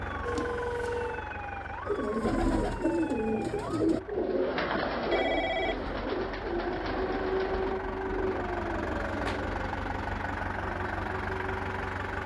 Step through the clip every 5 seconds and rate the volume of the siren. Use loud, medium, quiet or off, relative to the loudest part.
medium, loud, medium.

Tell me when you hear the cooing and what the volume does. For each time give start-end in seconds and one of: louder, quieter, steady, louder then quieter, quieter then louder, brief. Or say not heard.
1.9-8.4 quieter.